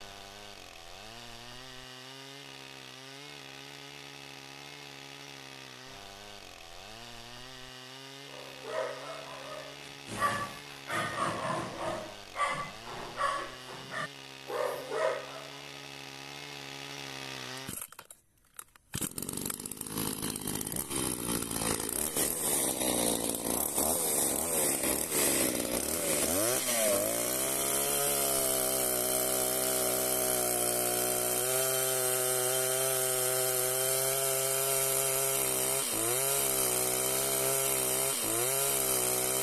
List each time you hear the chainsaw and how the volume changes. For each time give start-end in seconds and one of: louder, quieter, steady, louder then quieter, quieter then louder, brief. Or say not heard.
0.0-39.3 louder.